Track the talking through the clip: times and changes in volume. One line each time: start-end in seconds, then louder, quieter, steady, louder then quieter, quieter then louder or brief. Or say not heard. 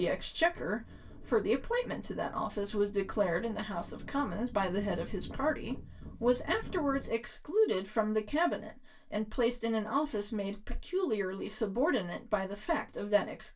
0.0-13.5 steady.